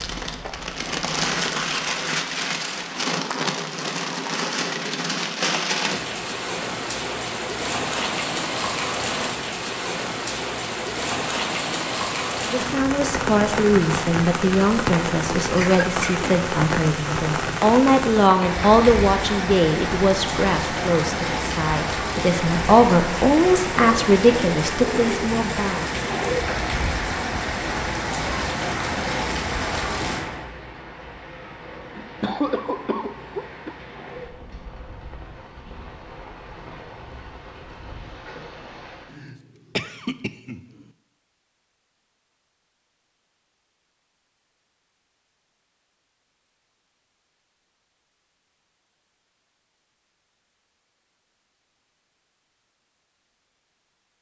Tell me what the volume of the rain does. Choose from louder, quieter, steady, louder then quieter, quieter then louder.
quieter.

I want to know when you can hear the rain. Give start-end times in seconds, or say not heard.
0.0-39.2.